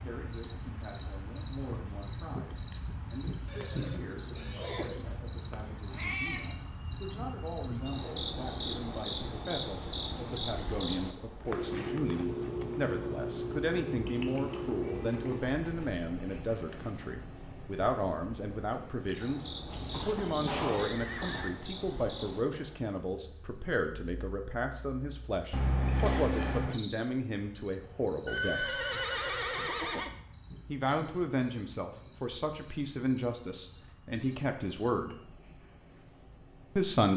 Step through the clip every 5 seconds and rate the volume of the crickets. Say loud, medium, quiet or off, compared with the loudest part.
loud, loud, loud, medium, medium, quiet, quiet, quiet.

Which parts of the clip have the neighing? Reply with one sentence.
The neighing can be heard from 3.5 to 5.0 s, from 19.6 to 21.5 s and from 28.2 to 30.1 s.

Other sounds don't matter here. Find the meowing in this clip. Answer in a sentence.
You can hear the meowing from 5.0 to 6.5 s, from 13.9 to 15.9 s and from 25.5 to 26.8 s.